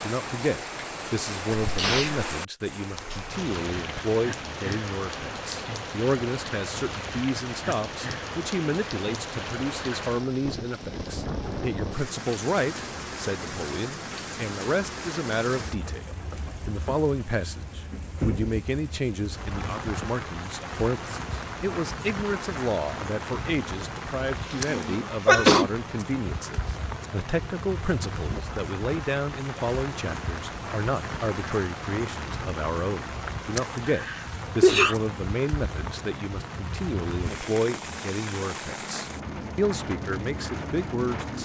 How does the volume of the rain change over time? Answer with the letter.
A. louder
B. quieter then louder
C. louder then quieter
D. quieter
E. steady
E.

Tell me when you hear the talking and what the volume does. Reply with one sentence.
You can hear the talking from 0.0 to 41.3 s, at a steady volume.